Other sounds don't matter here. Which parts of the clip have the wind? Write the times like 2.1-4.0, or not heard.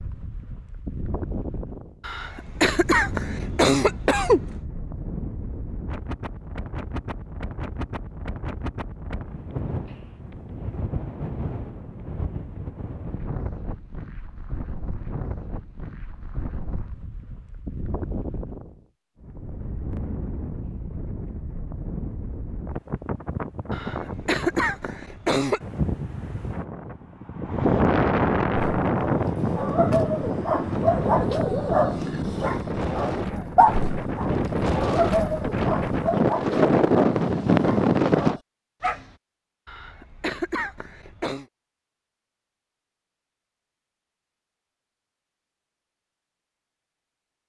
0.0-38.4.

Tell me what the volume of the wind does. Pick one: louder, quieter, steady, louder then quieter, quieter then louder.
louder.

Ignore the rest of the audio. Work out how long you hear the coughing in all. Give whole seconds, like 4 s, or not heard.
6 s.